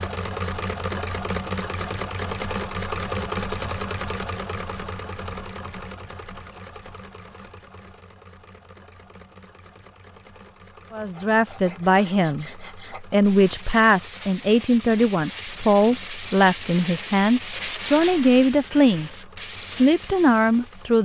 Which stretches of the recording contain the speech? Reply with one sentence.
You can hear the speech from 10.9 to 21.0 s.